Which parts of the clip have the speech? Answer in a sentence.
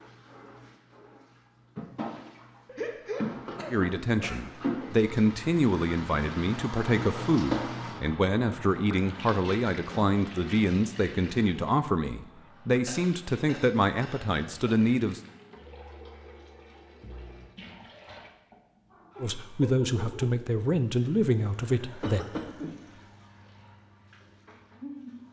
You can hear the speech from 3.7 to 15.2 s and from 19.2 to 22.2 s.